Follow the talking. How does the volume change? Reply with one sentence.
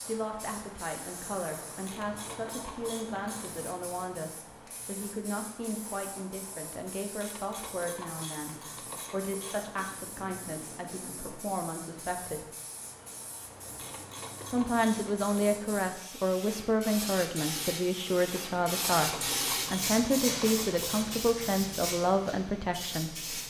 The loudness of the talking goes up.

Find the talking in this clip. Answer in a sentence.
You can hear the talking from 0.0 to 12.5 s and from 14.5 to 23.4 s.